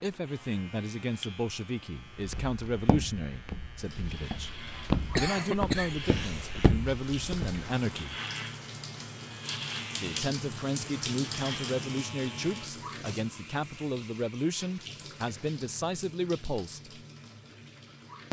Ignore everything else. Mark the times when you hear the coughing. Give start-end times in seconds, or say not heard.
5.1-6.6.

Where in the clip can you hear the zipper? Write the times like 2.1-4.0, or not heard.
not heard.